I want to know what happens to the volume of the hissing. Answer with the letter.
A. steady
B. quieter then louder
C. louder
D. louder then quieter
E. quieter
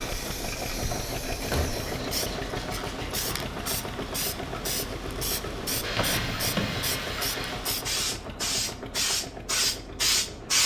C.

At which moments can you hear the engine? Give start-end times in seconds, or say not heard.
0.0-10.6.